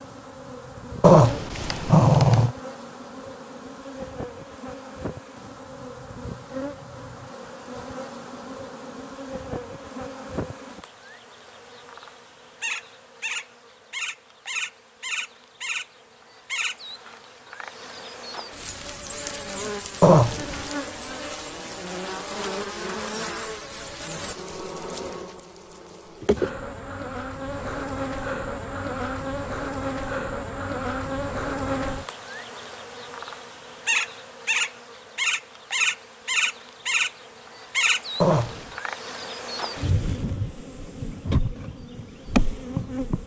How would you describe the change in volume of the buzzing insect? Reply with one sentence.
The loudness of the buzzing insect goes up.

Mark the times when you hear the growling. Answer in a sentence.
The growling can be heard from 1.0 to 2.5 s, from 20.0 to 20.6 s and from 38.2 to 38.7 s.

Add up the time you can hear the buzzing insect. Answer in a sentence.
The buzzing insect can be heard for 43 seconds in total.